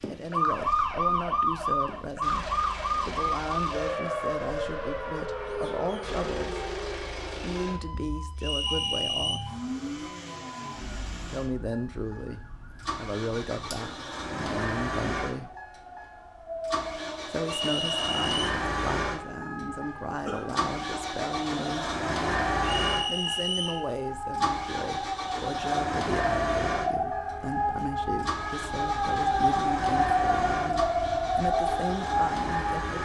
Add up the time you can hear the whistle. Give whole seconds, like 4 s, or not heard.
3 s.